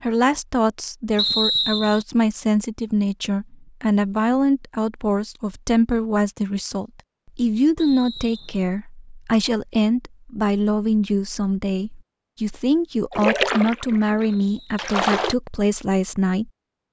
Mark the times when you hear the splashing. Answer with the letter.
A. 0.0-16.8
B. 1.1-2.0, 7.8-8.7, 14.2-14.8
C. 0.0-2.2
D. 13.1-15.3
D.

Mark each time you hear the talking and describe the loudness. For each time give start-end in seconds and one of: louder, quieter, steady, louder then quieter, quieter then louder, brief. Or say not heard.
0.0-16.8 steady.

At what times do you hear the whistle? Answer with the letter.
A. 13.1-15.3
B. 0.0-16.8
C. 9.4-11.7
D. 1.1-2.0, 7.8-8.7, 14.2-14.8
D.